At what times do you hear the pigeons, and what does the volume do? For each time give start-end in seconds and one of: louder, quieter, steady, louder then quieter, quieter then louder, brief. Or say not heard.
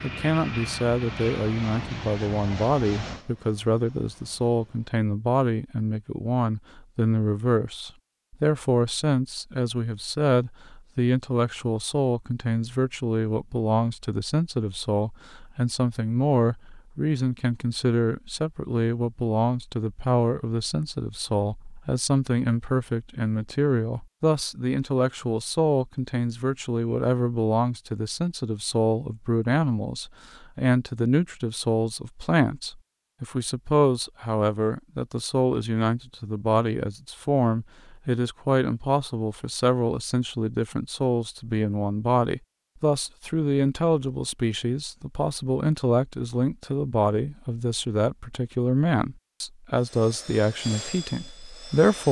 not heard.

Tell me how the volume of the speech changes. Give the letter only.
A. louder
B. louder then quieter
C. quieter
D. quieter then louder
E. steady
E.